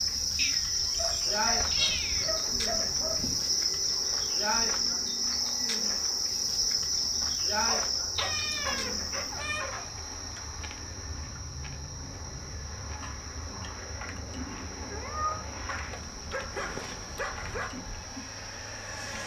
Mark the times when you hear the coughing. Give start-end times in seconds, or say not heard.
not heard.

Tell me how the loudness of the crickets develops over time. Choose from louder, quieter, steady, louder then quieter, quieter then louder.
quieter.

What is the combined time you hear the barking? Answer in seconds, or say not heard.
7 s.